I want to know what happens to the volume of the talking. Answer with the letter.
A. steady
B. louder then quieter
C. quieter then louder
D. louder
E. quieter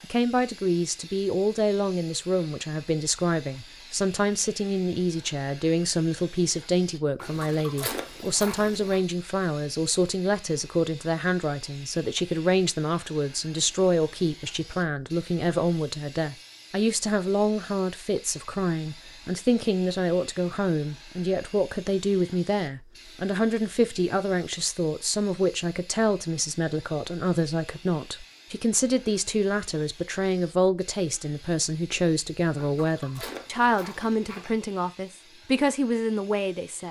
A.